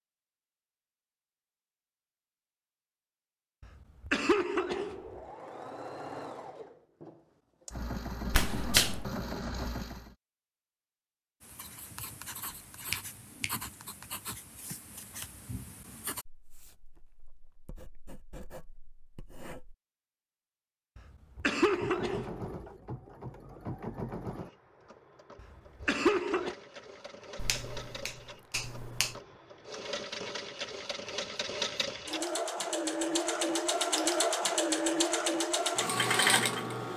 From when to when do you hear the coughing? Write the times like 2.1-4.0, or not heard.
3.6-5.2, 20.9-22.7, 25.4-26.6.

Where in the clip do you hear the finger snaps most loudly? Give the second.
9 s.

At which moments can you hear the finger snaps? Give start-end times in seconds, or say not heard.
8.3-9.1, 12.9-13.6, 27.4-29.2.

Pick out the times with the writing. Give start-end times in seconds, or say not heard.
11.4-19.8.